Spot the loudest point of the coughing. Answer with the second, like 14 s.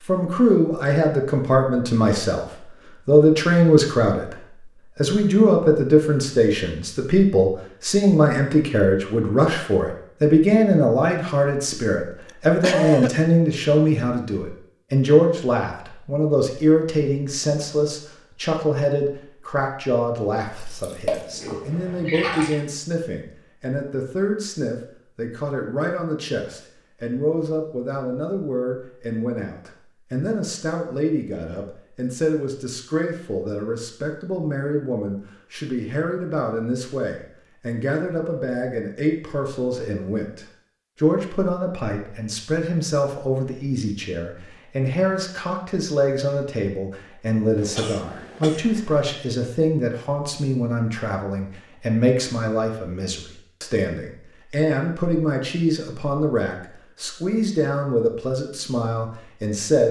13 s.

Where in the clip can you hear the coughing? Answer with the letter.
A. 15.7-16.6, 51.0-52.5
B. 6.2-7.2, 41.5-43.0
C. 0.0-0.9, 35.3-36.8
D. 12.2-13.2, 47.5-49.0
D.